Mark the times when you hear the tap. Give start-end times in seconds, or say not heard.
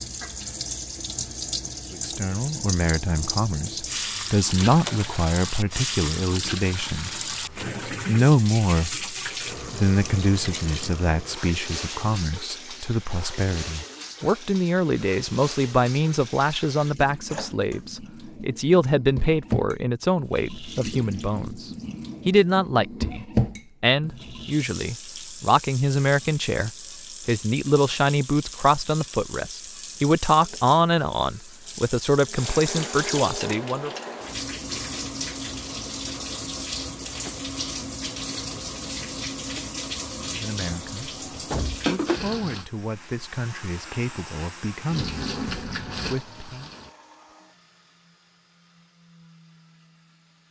0.0-42.6, 44.9-47.0.